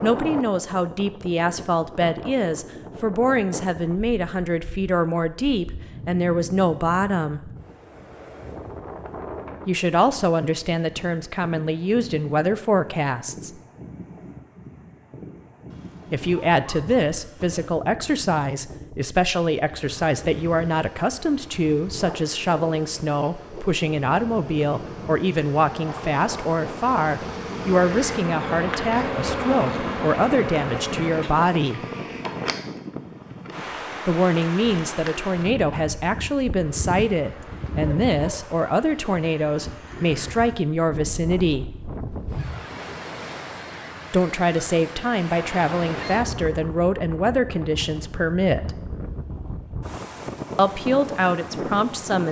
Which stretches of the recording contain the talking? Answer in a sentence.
The talking can be heard from 0.0 to 7.5 s, from 9.7 to 13.5 s, from 16.1 to 31.9 s, from 34.0 to 41.6 s, from 44.1 to 48.8 s and from 50.5 to 52.2 s.